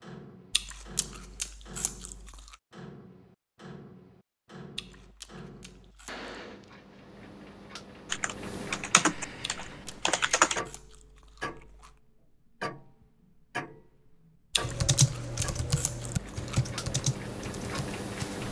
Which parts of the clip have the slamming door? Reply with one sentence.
You can't hear the slamming door here.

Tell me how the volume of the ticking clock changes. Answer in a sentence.
The loudness of the ticking clock goes up.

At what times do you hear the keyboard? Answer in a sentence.
You can hear the keyboard from 8.1 to 10.6 s and from 14.6 to 18.4 s.